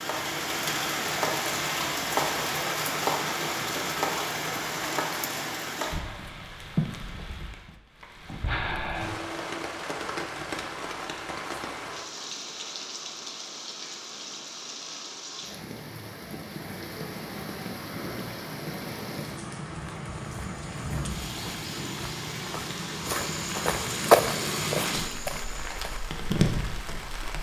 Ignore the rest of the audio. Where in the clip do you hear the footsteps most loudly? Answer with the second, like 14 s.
24 s.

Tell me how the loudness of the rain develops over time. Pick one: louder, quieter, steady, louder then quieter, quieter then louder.
quieter then louder.